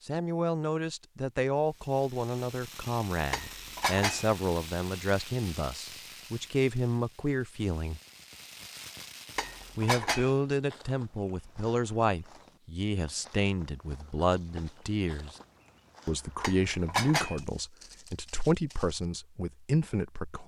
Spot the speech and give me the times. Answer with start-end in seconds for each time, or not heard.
0.1-8.0, 9.8-15.3, 16.1-20.4.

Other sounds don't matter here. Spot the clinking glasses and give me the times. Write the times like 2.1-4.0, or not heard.
3.3-4.3, 9.3-10.3, 16.4-17.4.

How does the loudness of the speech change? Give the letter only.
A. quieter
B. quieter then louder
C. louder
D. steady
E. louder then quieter
D.